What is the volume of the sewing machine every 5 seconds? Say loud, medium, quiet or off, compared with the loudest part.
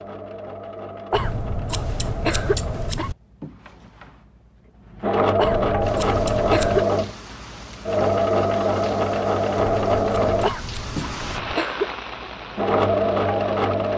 quiet, loud, loud.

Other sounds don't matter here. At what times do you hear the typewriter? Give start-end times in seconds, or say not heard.
not heard.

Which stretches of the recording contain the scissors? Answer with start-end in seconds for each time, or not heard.
1.1-3.1, 5.4-6.8, 9.6-11.6.